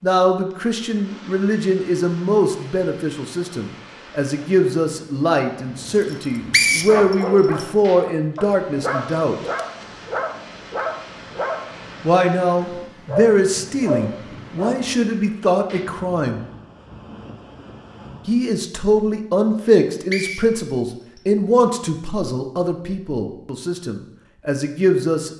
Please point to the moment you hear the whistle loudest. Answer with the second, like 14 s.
7 s.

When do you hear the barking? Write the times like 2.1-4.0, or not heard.
6.8-14.8.